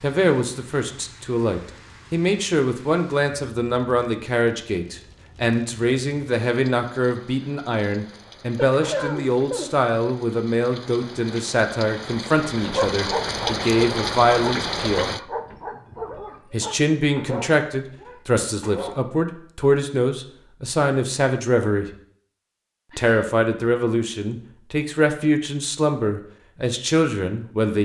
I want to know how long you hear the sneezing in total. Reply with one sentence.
The sneezing can be heard for 2 seconds in total.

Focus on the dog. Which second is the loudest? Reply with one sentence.
The volume of the dog peaks at 13 seconds.